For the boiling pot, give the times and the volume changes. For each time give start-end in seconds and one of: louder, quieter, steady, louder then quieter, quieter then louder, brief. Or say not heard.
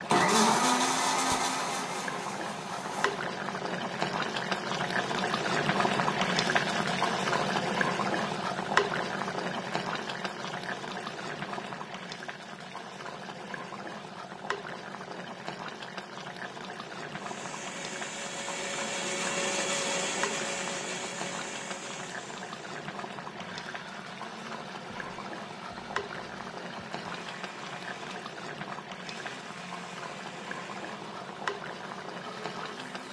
0.0-33.0 quieter.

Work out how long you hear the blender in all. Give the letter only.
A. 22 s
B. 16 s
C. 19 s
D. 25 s
C.